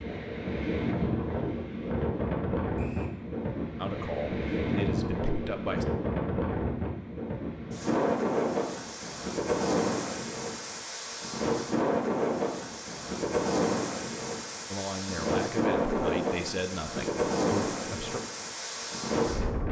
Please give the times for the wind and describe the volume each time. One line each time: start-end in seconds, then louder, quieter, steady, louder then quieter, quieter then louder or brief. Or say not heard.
0.0-19.6 steady.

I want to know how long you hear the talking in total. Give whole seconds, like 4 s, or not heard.
6 s.